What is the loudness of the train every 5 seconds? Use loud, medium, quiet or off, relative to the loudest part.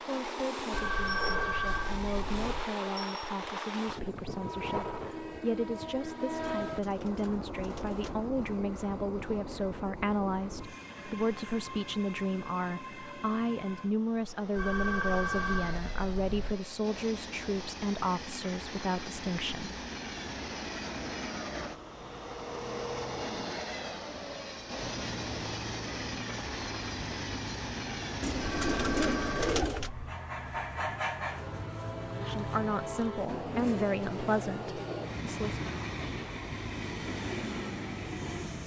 loud, loud, medium, medium, loud, loud, loud, loud.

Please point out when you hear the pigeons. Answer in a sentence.
You can hear the pigeons from 6.7 to 8.2 s and from 28.2 to 29.9 s.